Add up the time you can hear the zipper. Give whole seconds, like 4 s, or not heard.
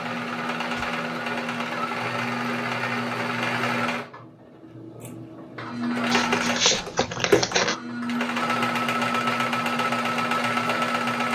2 s.